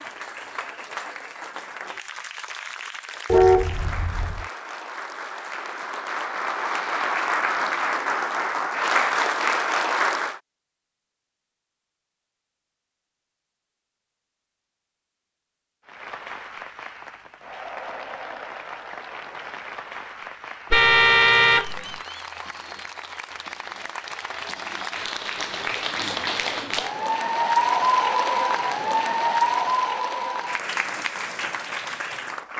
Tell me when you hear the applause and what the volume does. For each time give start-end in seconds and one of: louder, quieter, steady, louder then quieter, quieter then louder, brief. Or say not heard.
0.0-10.4 louder
15.8-32.5 louder.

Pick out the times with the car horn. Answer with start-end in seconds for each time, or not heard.
3.3-4.5, 20.7-21.9.